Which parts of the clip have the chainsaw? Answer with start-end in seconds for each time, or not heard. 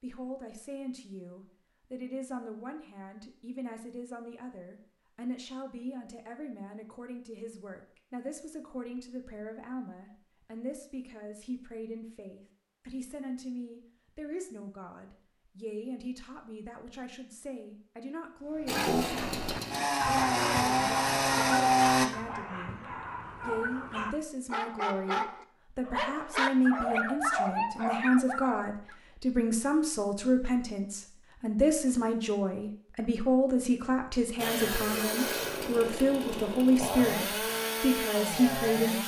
18.6-22.1, 34.4-39.0.